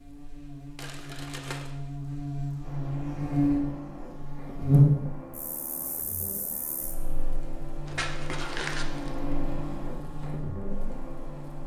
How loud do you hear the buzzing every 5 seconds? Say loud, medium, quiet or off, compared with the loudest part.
loud, quiet, quiet.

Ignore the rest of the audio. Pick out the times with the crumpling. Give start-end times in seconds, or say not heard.
0.8-1.7, 7.8-9.2.